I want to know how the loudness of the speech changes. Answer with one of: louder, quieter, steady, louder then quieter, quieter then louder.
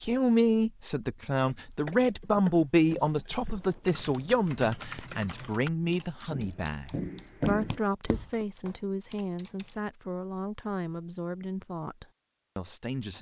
quieter.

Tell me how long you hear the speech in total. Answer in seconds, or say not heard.
13 s.